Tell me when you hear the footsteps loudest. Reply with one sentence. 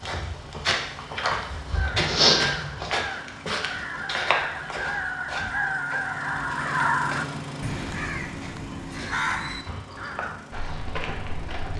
The loudest moment of the footsteps is at 2 seconds.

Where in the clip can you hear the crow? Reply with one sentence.
The crow can be heard from 1.7 to 10.4 s.